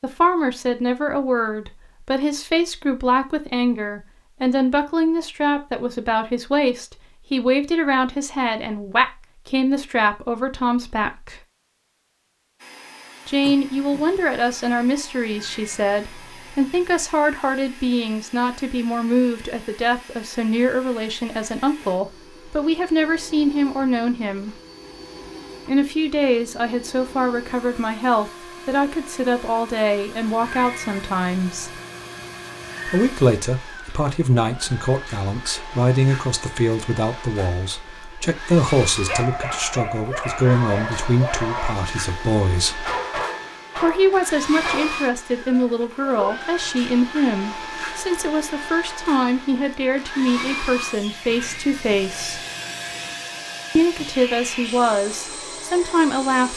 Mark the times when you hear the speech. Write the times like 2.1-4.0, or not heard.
0.0-11.3, 13.2-24.6, 25.6-31.7, 32.9-42.9, 43.8-52.4, 53.8-56.5.